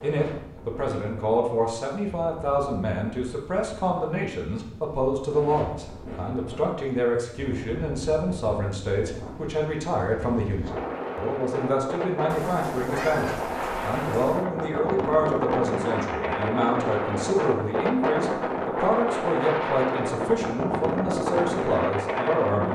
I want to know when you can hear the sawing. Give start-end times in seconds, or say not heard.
not heard.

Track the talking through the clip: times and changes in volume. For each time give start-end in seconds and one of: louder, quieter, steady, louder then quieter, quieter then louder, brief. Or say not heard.
0.0-22.7 steady.